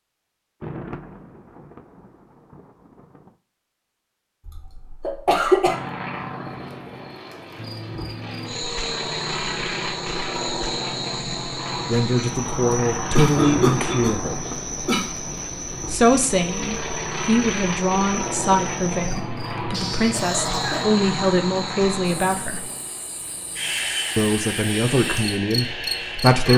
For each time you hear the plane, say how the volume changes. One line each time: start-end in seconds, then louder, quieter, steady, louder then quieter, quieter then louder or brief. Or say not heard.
5.7-26.5 steady.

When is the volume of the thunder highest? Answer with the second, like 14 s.
14 s.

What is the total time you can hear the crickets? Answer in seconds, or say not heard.
19 s.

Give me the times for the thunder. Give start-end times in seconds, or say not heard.
0.6-3.4, 13.3-15.9.